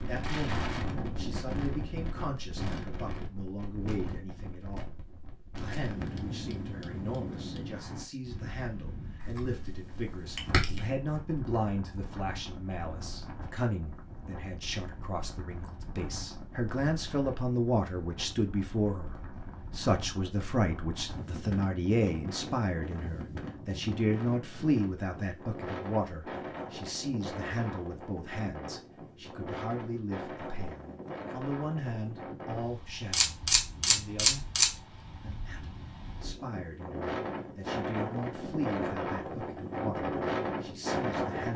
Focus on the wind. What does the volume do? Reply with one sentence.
The loudness of the wind goes down, then up.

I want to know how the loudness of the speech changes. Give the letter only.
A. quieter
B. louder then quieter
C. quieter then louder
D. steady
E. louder
B.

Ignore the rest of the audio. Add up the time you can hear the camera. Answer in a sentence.
The camera can be heard for 3 seconds in total.